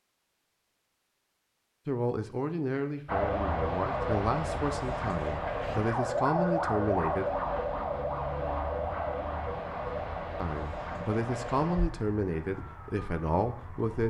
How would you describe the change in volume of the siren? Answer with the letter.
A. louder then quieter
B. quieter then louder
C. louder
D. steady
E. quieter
E.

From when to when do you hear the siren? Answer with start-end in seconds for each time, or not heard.
3.0-14.0.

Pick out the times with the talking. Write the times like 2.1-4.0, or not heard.
1.9-7.3, 10.3-14.0.